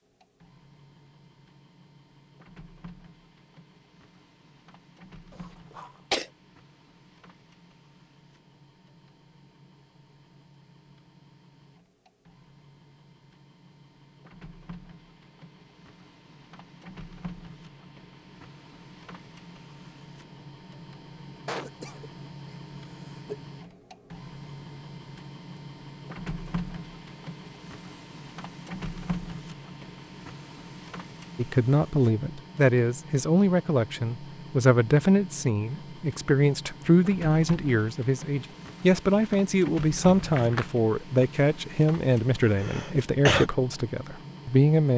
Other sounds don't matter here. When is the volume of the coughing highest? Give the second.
43 s.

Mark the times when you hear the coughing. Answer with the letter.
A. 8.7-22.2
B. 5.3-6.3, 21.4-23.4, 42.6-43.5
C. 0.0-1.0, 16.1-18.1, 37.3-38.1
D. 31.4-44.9
B.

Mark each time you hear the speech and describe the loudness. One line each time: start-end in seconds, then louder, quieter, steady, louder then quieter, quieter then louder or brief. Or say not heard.
31.4-44.9 steady.